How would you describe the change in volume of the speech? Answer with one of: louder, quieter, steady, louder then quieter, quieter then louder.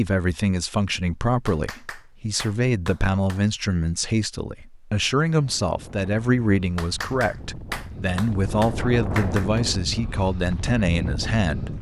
steady.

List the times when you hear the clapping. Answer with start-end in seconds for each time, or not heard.
1.4-3.5, 6.8-9.6.